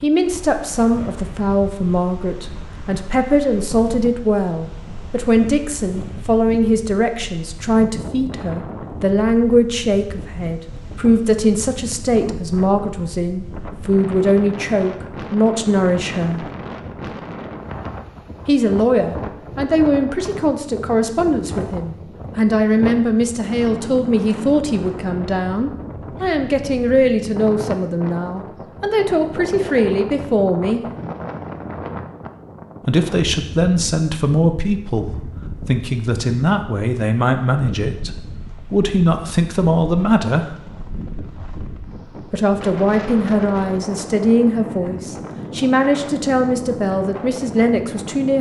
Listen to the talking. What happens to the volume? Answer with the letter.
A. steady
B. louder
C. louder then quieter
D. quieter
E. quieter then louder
A.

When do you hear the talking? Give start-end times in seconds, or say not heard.
0.0-16.5, 18.4-30.8, 32.8-40.5, 42.3-48.3.